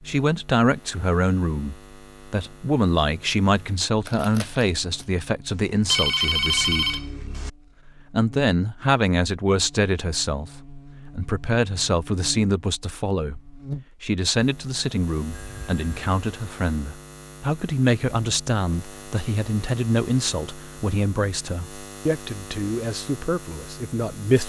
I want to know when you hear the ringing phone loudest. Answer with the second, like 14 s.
6 s.